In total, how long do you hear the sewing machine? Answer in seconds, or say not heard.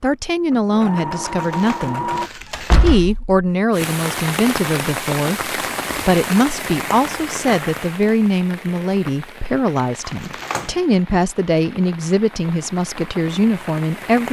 2 s.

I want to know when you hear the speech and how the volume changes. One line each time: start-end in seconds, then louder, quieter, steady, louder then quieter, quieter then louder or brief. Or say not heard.
0.0-14.2 steady.